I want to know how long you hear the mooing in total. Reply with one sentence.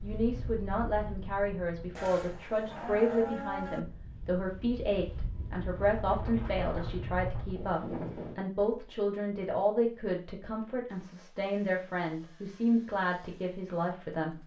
You can hear the mooing for 2 seconds altogether.